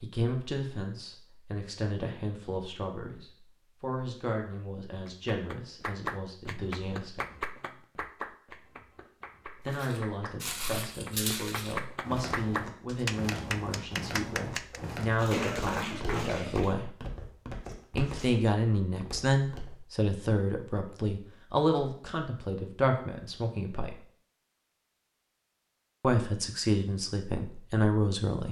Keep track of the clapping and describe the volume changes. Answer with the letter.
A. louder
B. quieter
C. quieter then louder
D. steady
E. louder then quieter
C.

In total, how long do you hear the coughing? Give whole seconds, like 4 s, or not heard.
2 s.